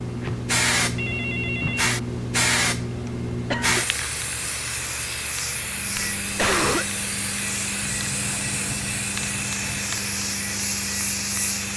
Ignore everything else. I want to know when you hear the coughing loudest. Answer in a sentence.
The loudest moment of the coughing is at 7 seconds.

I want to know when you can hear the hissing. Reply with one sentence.
The hissing can be heard from 0.0 to 11.7 s.